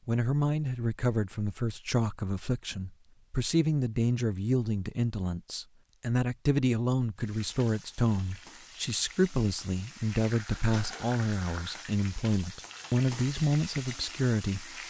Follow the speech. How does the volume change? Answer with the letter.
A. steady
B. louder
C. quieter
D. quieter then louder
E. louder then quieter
A.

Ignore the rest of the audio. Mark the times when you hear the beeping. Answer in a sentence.
You can't hear the beeping here.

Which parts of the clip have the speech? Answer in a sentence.
The speech can be heard from 0.1 to 14.8 s.